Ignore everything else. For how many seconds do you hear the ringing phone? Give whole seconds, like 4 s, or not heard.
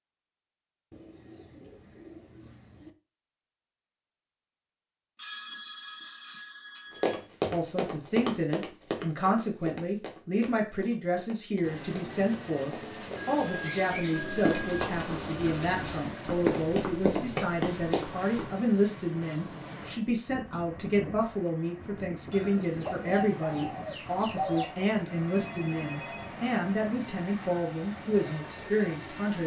5 s.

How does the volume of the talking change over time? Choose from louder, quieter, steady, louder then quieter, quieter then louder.
steady.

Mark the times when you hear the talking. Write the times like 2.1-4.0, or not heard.
7.5-29.4.